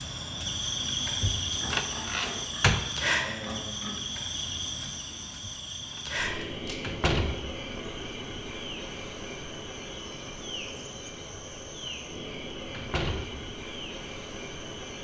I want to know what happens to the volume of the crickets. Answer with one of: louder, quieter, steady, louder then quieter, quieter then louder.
quieter.